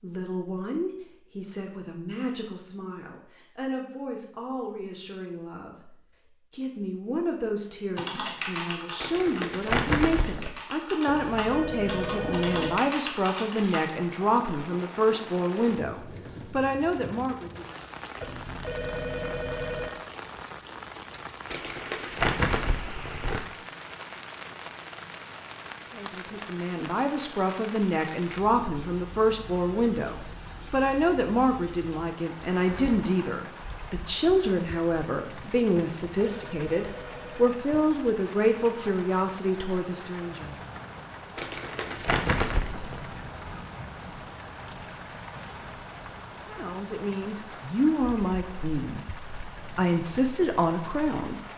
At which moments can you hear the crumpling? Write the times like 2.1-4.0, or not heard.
9.0-10.5, 21.5-23.4, 41.4-43.0.